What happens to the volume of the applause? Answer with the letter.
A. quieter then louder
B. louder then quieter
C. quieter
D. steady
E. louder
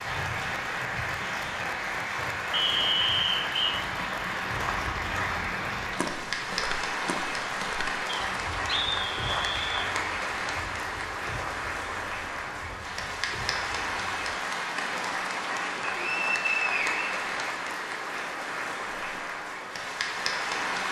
D.